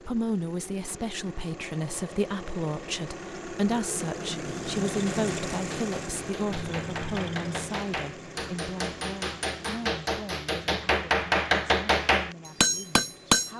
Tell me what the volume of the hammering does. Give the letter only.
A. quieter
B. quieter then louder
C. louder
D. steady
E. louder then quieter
C.